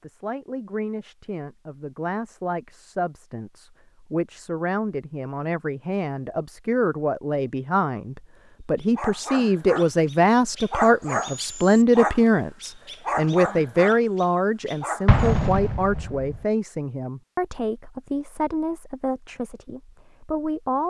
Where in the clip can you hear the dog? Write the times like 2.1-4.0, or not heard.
8.8-15.4.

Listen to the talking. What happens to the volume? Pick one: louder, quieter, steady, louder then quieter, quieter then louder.
louder then quieter.